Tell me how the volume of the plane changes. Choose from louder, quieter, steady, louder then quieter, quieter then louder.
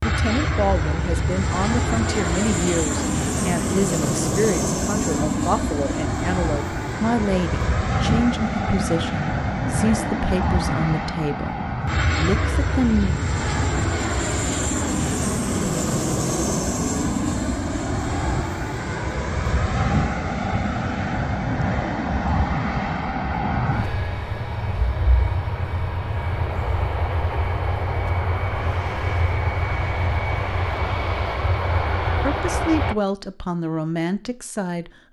steady.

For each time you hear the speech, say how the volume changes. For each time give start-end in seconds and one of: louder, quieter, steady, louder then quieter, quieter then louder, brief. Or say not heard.
0.0-13.2 steady
32.1-35.0 brief.